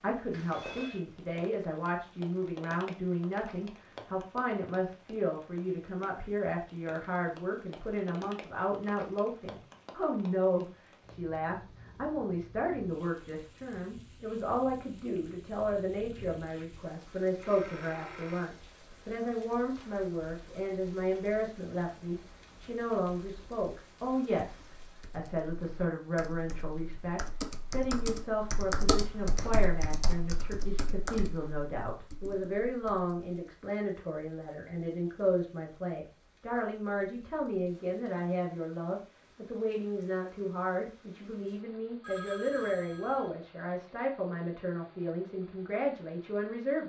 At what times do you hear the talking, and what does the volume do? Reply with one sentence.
The talking can be heard from 0.0 to 46.8 s, at a steady volume.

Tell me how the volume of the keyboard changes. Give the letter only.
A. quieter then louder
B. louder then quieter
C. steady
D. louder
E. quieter
B.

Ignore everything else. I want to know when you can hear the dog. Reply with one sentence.
You can't hear the dog here.